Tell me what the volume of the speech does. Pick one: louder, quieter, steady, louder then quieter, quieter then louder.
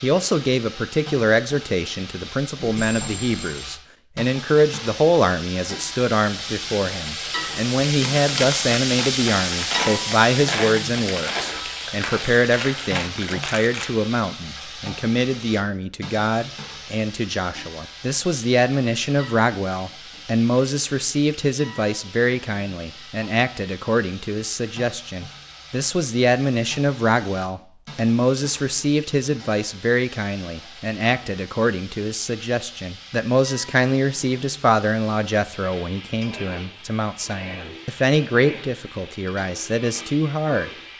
steady.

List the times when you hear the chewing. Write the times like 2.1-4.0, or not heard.
7.8-13.8.